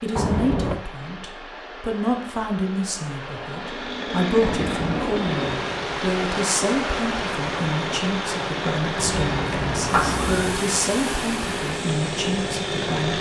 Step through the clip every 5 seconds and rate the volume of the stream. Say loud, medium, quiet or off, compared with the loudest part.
medium, loud, loud.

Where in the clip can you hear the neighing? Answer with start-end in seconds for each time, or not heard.
0.1-0.8, 4.4-5.1, 8.9-10.6.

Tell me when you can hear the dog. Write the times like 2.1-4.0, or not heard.
not heard.